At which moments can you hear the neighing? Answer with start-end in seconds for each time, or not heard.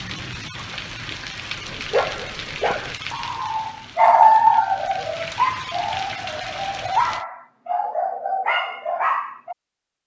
not heard.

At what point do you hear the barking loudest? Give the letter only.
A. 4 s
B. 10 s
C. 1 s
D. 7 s
A.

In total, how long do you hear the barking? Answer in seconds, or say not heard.
8 s.